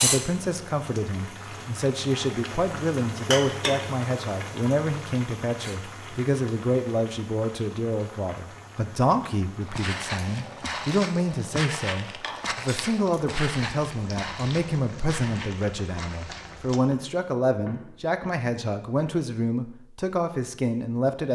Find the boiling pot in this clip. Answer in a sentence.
You can hear the boiling pot from 0.0 to 16.8 s.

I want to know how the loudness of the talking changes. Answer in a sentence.
The loudness of the talking stays about the same.